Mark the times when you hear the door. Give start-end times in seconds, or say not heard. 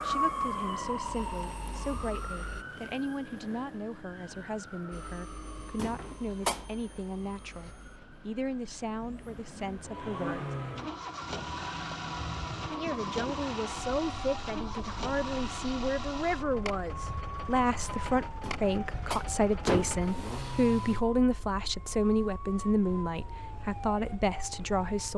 5.8-6.7, 18.4-20.1.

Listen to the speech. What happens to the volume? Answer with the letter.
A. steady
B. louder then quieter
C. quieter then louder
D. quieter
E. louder
E.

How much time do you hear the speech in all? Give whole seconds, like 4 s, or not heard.
23 s.